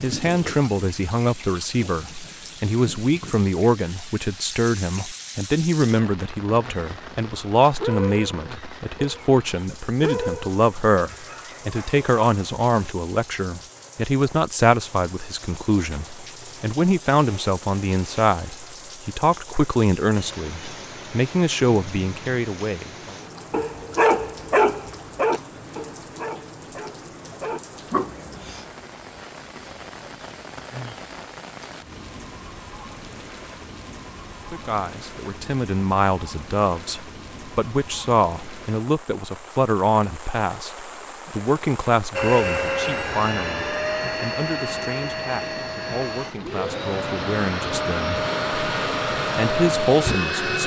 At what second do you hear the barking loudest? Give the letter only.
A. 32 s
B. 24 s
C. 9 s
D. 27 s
B.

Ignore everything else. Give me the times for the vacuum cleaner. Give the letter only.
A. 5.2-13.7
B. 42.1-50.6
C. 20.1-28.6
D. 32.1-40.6
B.